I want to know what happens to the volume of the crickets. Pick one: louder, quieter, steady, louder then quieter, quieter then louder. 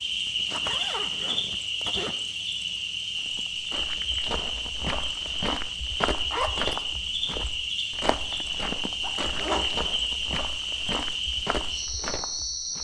steady.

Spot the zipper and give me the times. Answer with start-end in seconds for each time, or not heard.
0.2-2.1, 6.3-6.7, 9.0-9.7.